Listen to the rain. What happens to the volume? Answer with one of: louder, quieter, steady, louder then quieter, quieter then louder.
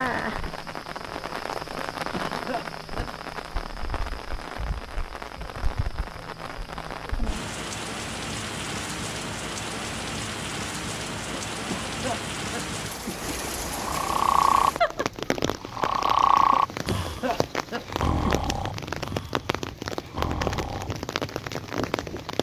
steady.